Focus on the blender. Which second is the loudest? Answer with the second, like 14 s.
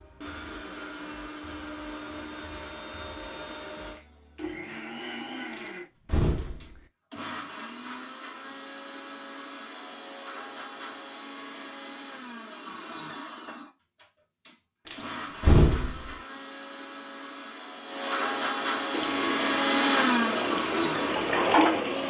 20 s.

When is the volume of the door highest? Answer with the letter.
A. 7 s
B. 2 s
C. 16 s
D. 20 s
C.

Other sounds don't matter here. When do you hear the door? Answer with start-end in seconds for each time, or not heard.
5.5-6.8, 14.8-16.1.